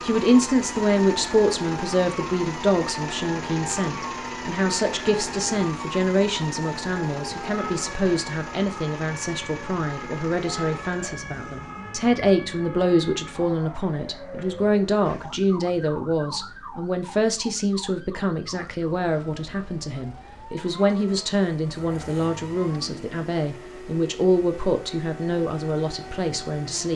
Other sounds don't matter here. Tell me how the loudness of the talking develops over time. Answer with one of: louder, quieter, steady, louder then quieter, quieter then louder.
steady.